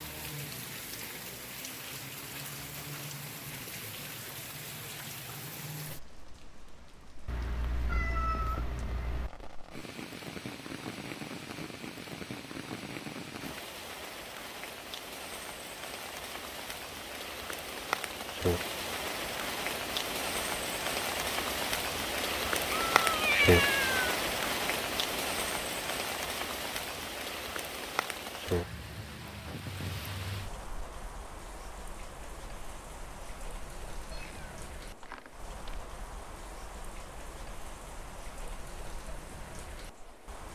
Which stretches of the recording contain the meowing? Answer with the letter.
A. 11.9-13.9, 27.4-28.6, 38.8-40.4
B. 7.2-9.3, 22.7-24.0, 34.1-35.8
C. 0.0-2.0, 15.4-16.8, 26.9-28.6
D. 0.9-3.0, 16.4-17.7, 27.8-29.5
B.